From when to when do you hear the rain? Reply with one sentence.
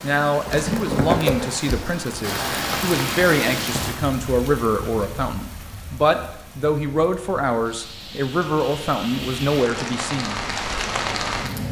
The rain can be heard from 0.0 to 11.6 s.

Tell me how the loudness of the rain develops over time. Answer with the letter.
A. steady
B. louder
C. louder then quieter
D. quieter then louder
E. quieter
D.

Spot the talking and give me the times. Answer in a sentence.
The talking can be heard from 0.0 to 10.4 s.